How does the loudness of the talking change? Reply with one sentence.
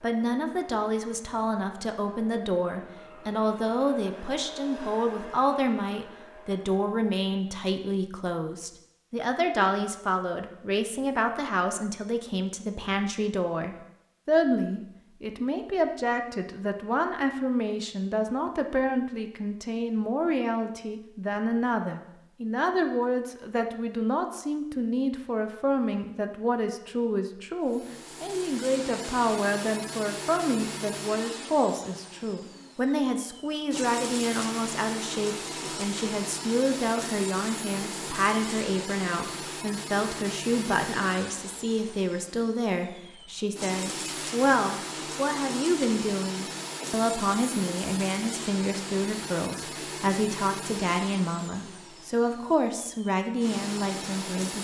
The loudness of the talking stays about the same.